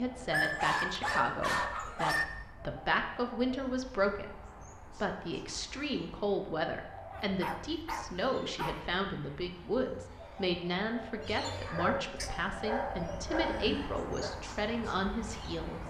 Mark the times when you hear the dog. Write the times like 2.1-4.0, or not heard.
0.3-2.2, 7.1-8.8, 11.4-14.4.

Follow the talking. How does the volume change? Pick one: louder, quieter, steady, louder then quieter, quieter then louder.
steady.